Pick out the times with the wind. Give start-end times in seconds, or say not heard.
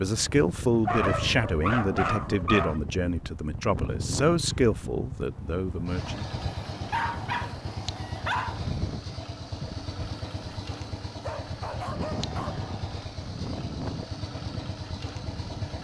0.0-15.7.